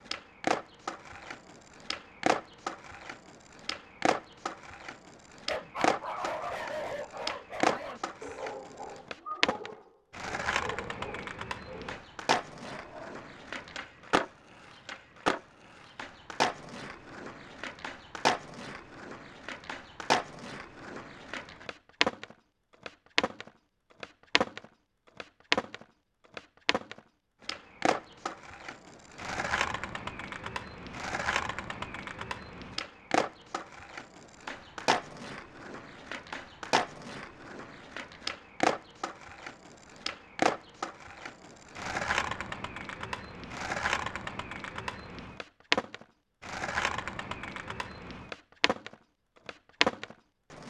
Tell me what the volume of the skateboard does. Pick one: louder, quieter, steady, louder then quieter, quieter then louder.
steady.